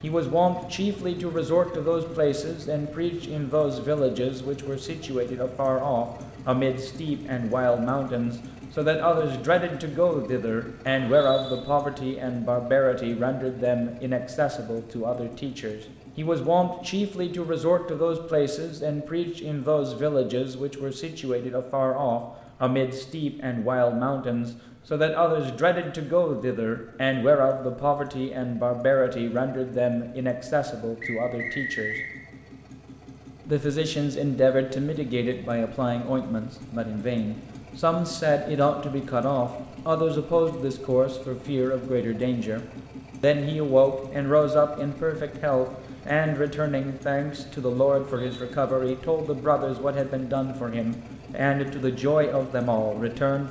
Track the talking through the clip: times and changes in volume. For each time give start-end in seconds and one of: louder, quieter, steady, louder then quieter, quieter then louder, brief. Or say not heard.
0.0-31.9 steady
33.5-53.4 steady.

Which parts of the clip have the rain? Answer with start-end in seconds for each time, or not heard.
not heard.